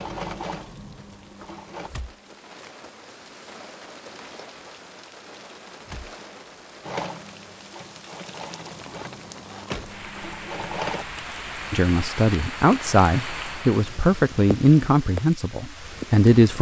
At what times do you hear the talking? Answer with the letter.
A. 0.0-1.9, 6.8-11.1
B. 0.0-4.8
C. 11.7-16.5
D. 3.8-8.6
C.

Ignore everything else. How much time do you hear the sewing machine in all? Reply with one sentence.
The sewing machine can be heard for 6 seconds in total.